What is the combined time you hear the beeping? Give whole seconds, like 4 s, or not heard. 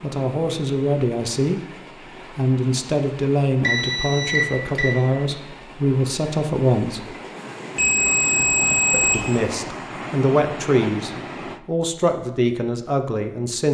3 s.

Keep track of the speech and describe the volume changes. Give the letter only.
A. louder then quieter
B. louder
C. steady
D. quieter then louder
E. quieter
C.